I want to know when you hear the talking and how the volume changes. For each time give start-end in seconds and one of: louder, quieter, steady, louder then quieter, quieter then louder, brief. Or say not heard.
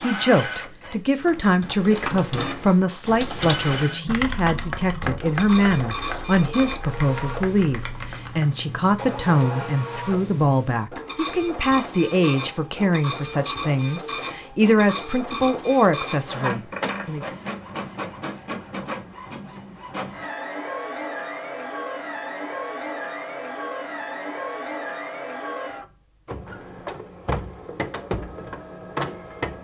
0.0-17.2 steady.